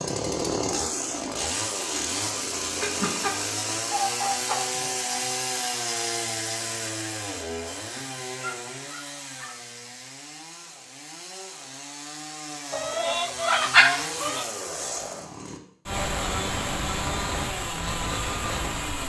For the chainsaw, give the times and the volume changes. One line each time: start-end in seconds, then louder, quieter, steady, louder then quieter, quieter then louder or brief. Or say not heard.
0.0-19.0 quieter then louder.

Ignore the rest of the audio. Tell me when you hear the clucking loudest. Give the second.
14 s.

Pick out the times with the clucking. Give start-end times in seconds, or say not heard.
2.8-5.2, 12.7-14.4.